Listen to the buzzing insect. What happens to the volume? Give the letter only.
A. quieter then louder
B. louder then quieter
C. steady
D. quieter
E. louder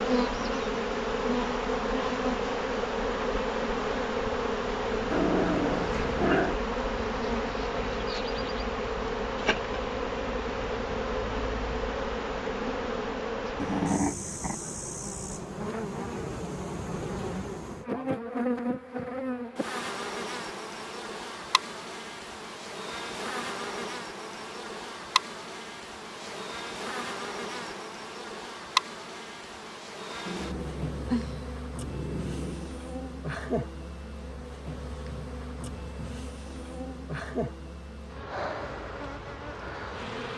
D.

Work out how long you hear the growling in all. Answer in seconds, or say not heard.
5 s.